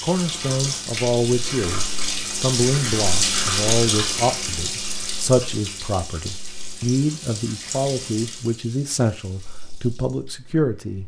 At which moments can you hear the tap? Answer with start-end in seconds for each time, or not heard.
0.0-11.0.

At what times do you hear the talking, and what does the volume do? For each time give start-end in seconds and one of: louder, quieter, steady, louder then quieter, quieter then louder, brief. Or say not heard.
0.0-11.0 steady.